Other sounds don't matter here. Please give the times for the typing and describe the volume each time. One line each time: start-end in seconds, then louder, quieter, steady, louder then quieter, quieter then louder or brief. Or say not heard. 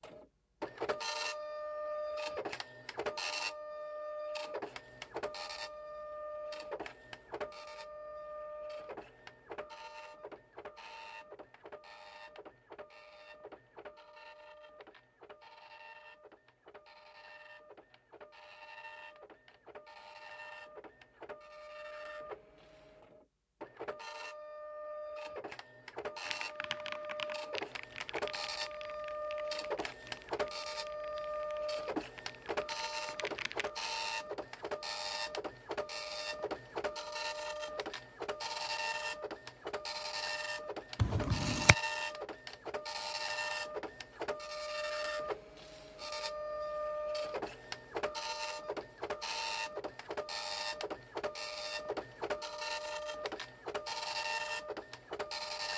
26.2-33.7 quieter then louder.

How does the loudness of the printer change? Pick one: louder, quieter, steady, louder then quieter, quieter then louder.
quieter then louder.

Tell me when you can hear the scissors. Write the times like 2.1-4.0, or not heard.
41.0-41.8.